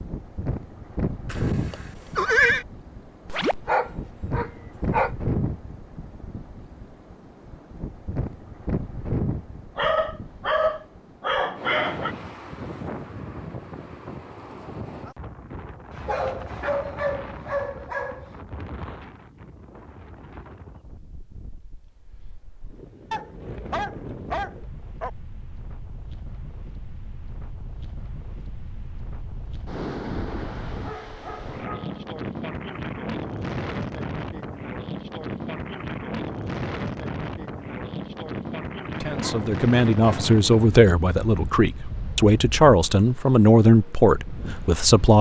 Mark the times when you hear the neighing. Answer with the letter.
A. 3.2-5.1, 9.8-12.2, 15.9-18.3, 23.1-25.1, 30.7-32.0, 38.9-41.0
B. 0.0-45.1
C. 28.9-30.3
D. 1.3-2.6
D.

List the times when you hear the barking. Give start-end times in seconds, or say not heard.
3.2-5.1, 9.8-12.2, 15.9-18.3, 23.1-25.1, 30.7-32.0, 38.9-41.0.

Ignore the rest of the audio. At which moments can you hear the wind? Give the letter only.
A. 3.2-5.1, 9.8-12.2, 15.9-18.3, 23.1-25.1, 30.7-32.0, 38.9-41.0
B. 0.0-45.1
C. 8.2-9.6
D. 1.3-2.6
B.